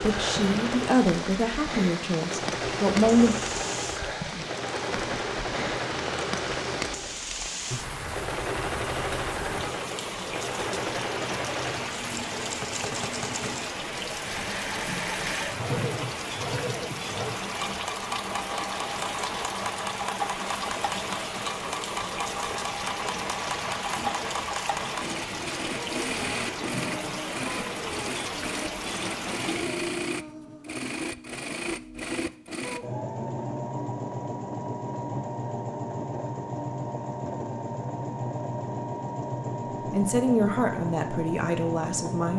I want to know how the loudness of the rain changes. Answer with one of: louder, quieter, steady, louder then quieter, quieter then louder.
steady.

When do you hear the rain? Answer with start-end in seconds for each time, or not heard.
0.0-29.8.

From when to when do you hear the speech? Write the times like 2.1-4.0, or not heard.
0.0-3.4, 39.9-42.3.